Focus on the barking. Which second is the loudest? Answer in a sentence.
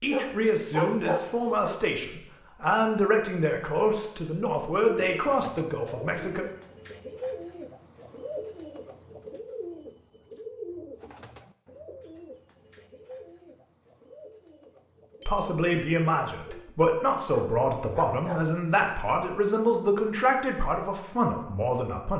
The volume of the barking peaks at 1 second.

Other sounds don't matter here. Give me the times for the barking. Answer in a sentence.
The barking can be heard from 0.1 to 1.8 s and from 17.3 to 19.0 s.